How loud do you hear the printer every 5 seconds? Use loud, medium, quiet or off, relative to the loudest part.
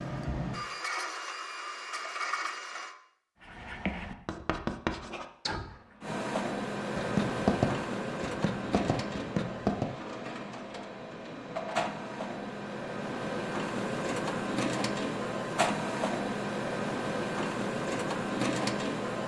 medium, loud, loud, loud.